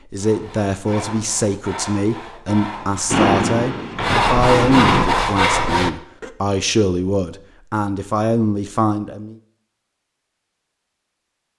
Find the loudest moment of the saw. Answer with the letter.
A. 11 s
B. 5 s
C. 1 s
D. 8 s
B.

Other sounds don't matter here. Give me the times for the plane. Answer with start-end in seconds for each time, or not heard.
3.1-5.0.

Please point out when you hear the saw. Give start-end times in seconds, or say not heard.
0.1-6.3.